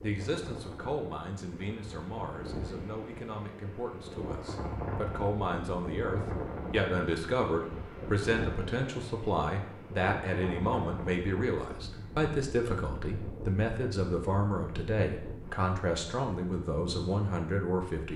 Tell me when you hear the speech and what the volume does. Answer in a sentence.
You can hear the speech from 0.0 to 18.1 s, getting louder.